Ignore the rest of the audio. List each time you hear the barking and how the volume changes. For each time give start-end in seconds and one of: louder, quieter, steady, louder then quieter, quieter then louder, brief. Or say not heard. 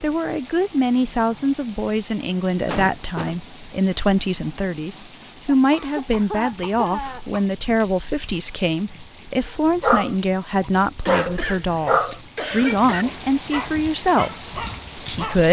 9.6-15.4 louder then quieter.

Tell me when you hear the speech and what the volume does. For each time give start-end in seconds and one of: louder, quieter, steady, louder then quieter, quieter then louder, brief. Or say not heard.
0.0-15.4 steady.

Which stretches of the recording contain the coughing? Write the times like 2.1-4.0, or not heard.
2.6-3.4, 5.5-7.5, 11.1-13.1.